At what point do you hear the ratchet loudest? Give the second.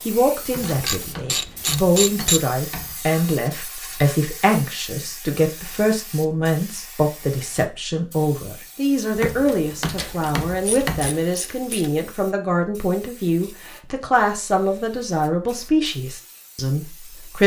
2 s.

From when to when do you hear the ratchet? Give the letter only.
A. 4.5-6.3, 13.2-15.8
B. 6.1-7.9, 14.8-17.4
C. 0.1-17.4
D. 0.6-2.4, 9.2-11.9
D.